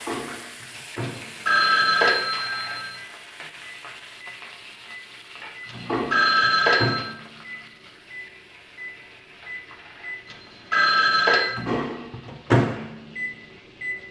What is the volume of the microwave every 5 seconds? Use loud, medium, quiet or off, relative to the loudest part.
medium, medium, loud.